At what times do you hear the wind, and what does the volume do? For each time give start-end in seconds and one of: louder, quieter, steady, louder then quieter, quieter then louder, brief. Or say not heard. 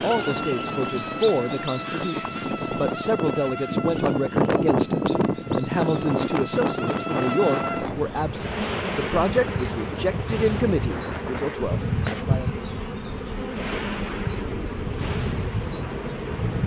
0.0-16.6 louder then quieter.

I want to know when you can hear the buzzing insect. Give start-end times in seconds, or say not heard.
0.0-16.6.